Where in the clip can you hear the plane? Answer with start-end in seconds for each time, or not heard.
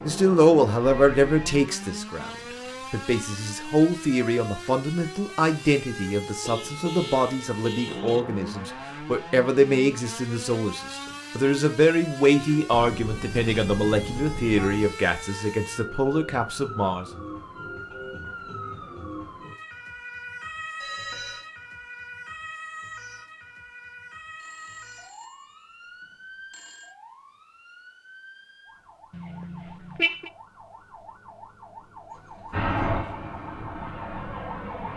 32.5-34.9.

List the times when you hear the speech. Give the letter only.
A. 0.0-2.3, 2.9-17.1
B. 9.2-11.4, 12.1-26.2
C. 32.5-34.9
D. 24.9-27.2
A.